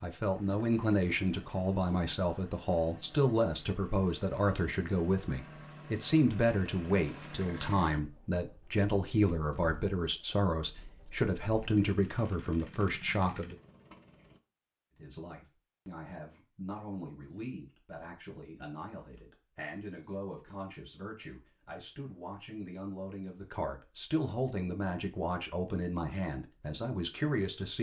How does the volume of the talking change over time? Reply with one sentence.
The volume of the talking goes down, then up.